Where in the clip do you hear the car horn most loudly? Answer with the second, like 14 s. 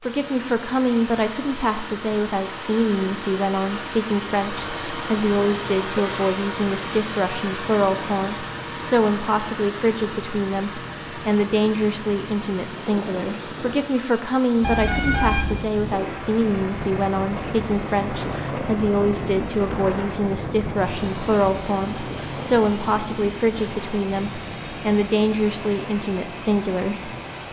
15 s.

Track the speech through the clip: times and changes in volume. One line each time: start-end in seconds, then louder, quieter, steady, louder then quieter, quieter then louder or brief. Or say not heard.
0.0-27.1 steady.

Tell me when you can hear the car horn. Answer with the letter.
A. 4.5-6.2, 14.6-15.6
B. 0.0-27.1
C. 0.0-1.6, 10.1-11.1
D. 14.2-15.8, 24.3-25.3
A.